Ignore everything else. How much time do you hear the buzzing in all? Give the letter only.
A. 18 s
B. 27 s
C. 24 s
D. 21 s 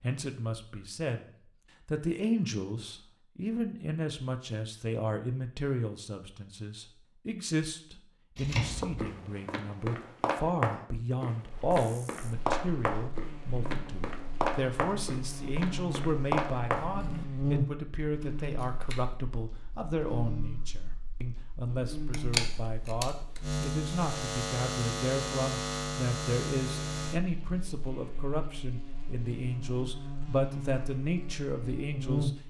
D.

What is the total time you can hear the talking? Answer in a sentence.
The talking can be heard for 32 seconds in total.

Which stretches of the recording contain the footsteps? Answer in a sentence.
You can hear the footsteps from 8.6 to 16.9 s.